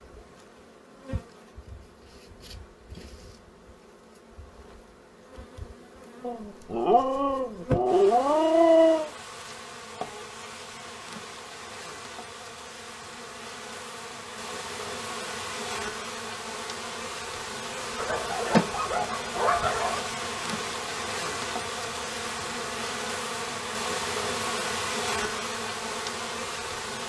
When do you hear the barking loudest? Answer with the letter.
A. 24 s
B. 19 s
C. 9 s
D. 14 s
C.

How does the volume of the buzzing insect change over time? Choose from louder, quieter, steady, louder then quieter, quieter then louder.
louder.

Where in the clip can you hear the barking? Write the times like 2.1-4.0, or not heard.
6.2-9.1, 17.9-20.1.